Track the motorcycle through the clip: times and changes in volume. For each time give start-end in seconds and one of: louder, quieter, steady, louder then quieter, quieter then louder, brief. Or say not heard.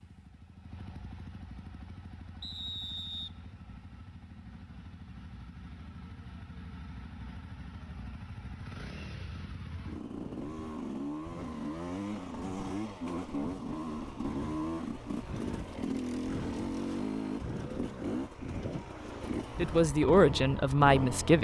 0.0-21.3 louder.